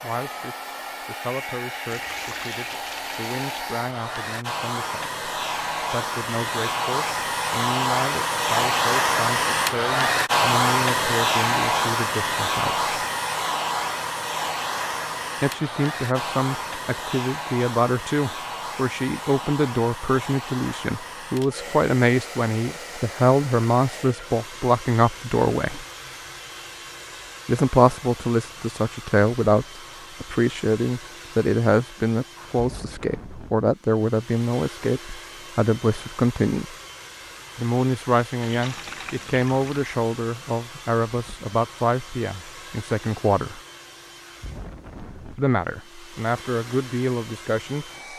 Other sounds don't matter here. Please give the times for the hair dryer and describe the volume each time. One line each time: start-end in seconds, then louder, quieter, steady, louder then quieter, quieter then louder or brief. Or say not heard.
0.0-48.1 quieter.